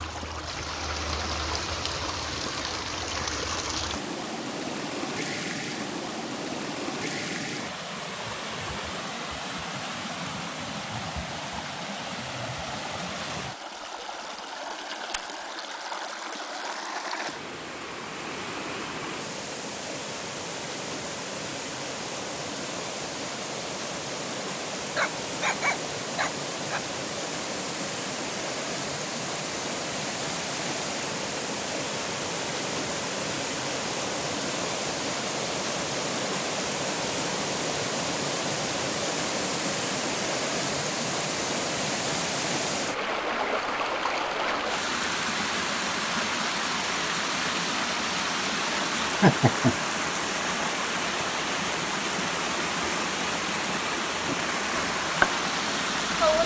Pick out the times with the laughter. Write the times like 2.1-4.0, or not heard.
49.2-49.8.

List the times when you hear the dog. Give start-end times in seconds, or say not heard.
24.9-26.8.